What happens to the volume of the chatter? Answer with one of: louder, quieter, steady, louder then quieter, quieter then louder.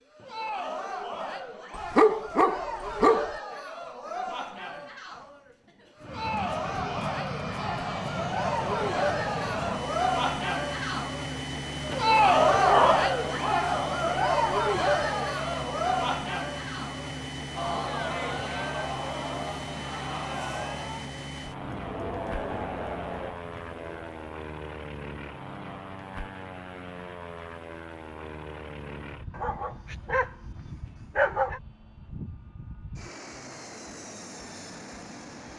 louder then quieter.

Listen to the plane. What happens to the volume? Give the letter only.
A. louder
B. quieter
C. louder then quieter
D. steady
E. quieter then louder
B.